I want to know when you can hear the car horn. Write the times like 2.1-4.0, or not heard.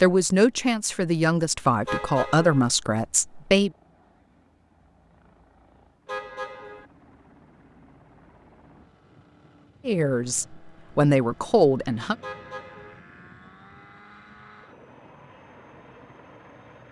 1.9-2.6, 6.0-6.8, 12.2-13.0.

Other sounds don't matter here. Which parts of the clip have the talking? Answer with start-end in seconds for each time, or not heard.
0.0-3.7, 9.8-12.2.